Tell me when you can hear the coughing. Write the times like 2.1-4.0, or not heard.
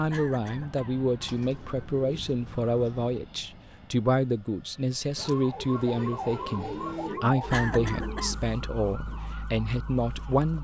0.1-0.9, 7.5-8.3.